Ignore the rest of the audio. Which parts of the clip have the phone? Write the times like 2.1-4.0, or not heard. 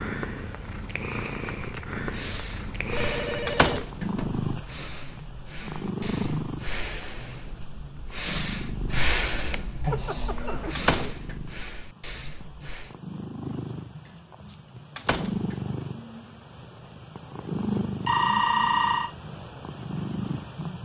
2.9-4.5, 9.8-10.8, 18.1-19.1.